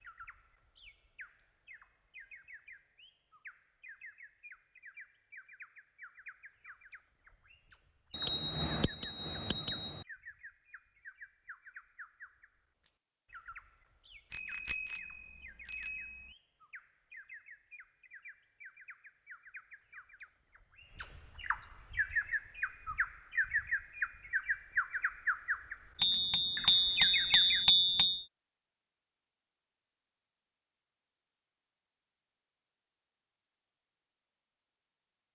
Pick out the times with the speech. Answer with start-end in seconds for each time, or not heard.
not heard.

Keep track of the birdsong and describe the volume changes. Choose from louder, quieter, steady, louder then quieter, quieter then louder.
louder.